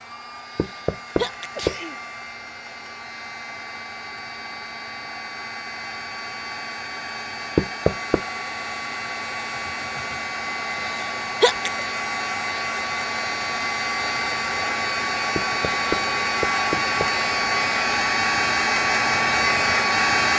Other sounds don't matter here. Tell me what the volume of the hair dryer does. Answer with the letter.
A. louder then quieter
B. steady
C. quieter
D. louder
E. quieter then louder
D.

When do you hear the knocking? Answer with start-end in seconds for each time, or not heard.
0.6-1.8, 7.5-8.2, 15.3-17.1.